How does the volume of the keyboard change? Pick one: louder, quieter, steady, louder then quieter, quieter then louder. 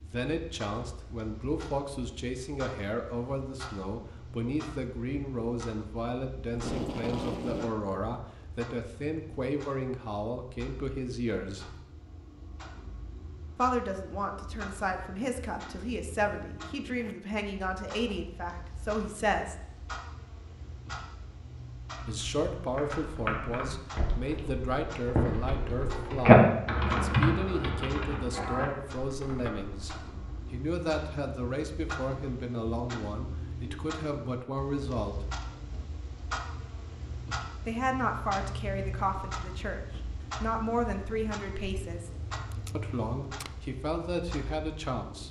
louder then quieter.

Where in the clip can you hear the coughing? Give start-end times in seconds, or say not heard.
not heard.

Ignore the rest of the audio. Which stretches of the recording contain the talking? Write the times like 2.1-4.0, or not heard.
0.0-11.8, 13.6-19.6, 22.1-35.2, 37.6-42.1, 42.8-45.2.